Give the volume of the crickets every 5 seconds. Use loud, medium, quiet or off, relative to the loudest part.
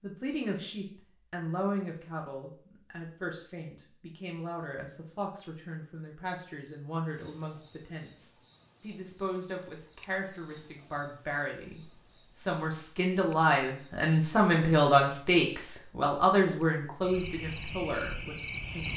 off, loud, loud, quiet.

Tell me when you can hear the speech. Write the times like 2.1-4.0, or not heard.
0.0-18.9.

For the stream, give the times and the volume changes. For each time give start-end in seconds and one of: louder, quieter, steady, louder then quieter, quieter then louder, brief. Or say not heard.
not heard.